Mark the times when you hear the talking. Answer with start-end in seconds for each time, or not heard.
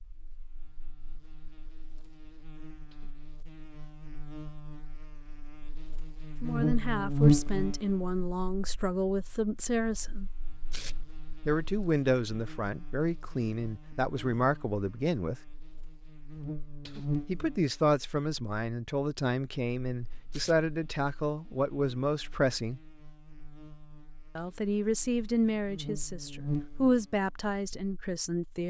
6.4-10.3, 11.4-15.3, 17.2-22.8, 24.4-28.6.